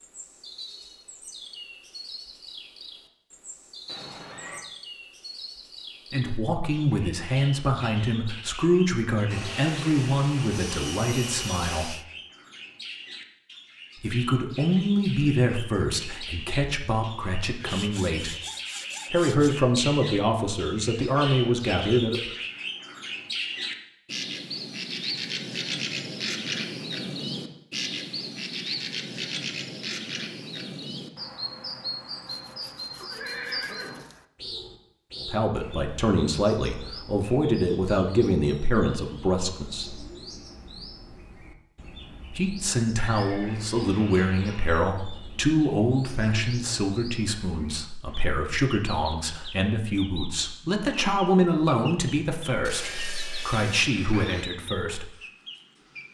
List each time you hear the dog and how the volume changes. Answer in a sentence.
The dog can't be heard in this clip.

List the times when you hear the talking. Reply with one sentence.
You can hear the talking from 6.1 to 11.9 s, from 14.0 to 18.4 s, from 19.1 to 22.3 s, from 35.2 to 40.0 s and from 42.3 to 55.1 s.